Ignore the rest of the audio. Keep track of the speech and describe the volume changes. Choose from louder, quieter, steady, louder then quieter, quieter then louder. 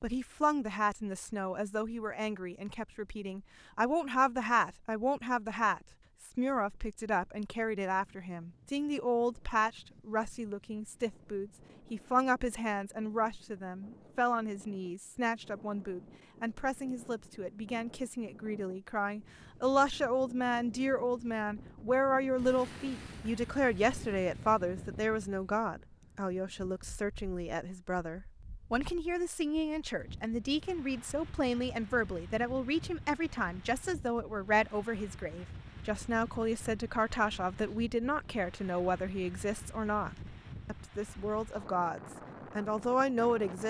steady.